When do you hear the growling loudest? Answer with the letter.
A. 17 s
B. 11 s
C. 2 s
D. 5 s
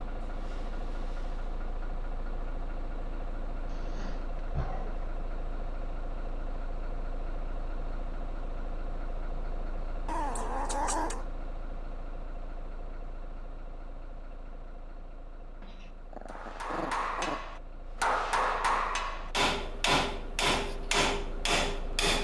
B.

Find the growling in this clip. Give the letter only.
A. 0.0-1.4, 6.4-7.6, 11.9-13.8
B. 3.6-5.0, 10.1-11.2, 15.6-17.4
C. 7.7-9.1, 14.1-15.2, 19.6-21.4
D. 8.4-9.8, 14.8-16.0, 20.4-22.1
B.